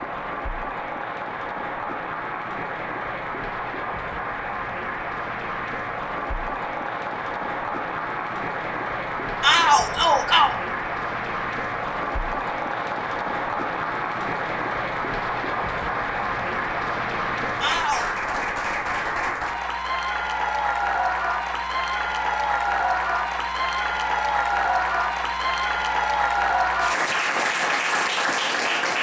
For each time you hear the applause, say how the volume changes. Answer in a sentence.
You can hear the applause from 0.0 to 28.9 s, getting louder.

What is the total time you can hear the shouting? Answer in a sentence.
The shouting can be heard for 2 seconds in total.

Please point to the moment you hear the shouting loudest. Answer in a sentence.
The volume of the shouting peaks at 10 seconds.